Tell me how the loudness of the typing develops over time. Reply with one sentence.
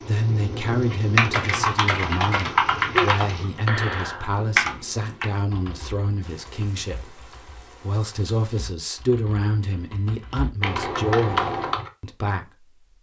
The loudness of the typing goes down, then up.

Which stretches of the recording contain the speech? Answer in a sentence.
You can hear the speech from 0.0 to 12.8 s.